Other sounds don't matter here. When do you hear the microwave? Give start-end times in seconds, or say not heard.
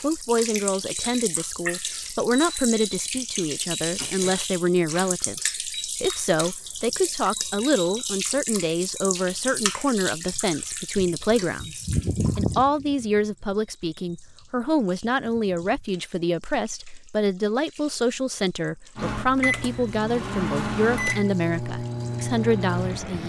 18.9-23.2.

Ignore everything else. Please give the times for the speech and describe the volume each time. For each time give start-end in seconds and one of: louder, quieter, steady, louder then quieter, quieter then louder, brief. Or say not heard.
0.0-23.2 steady.